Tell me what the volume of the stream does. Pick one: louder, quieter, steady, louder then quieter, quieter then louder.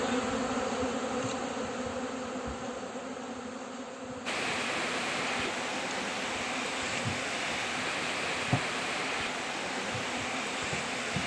steady.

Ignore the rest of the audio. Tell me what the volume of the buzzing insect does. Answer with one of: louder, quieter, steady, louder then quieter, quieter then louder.
quieter.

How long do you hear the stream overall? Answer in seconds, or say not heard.
7 s.